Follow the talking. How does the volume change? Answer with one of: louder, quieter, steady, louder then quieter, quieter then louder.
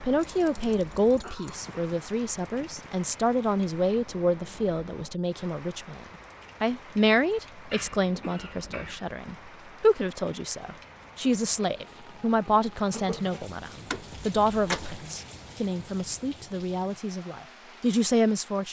steady.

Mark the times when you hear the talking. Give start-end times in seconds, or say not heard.
0.0-18.6.